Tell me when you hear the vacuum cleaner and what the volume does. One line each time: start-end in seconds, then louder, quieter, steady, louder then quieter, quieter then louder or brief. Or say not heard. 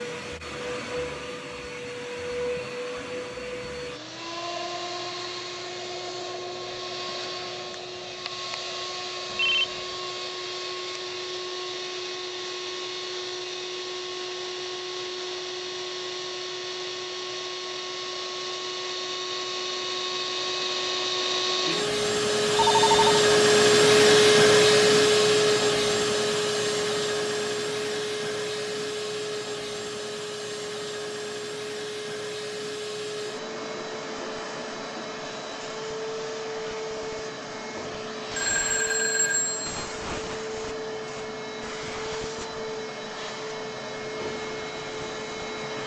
0.0-45.8 louder then quieter.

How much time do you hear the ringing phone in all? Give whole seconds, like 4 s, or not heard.
3 s.